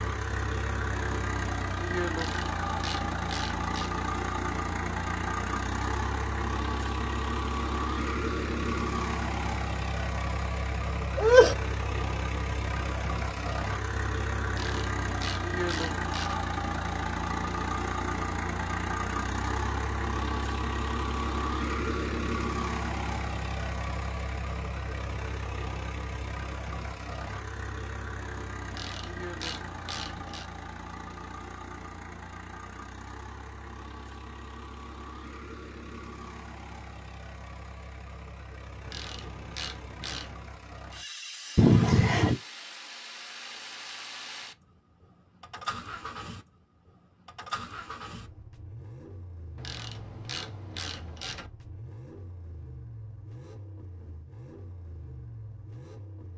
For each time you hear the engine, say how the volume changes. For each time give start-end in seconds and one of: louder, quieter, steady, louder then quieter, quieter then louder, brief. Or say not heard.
0.0-56.3 quieter.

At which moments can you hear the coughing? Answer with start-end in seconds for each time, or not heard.
10.8-11.6, 41.5-42.4.